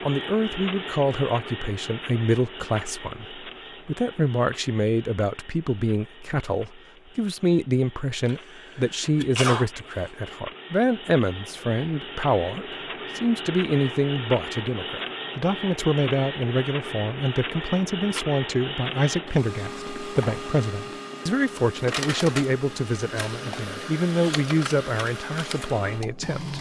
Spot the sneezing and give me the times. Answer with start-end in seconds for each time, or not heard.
8.2-10.1.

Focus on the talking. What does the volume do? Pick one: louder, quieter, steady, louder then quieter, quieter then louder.
steady.